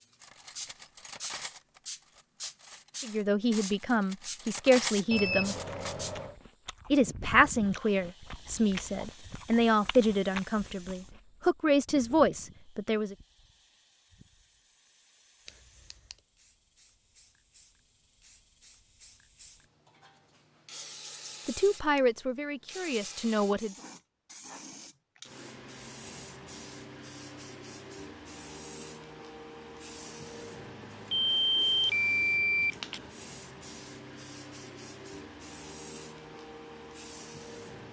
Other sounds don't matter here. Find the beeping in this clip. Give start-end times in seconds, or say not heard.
5.1-6.3, 15.4-16.1, 31.1-32.7.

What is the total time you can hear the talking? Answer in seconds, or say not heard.
11 s.